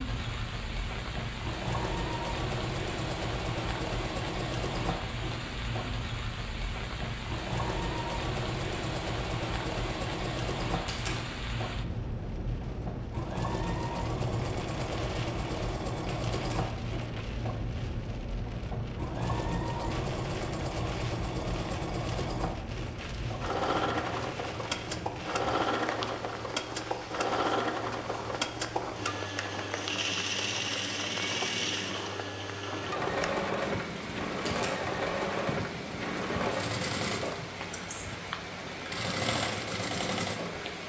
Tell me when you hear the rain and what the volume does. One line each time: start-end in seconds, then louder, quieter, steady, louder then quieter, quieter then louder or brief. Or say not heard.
0.0-40.8 steady.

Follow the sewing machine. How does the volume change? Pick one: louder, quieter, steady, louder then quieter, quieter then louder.
steady.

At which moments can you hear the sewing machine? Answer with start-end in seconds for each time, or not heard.
0.0-40.8.